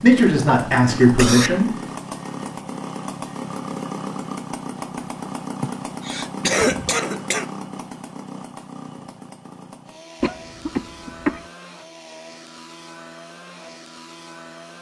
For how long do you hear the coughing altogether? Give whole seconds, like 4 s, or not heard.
4 s.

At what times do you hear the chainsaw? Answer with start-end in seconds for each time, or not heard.
0.0-14.7.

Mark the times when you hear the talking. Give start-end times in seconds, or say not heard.
0.0-1.6.